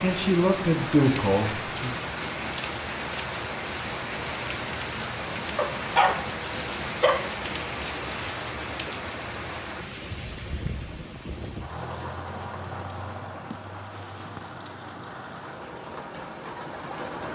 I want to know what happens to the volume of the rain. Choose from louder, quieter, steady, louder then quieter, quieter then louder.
quieter.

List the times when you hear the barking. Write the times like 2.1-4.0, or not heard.
5.5-7.2.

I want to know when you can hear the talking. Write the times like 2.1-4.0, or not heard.
0.0-1.9.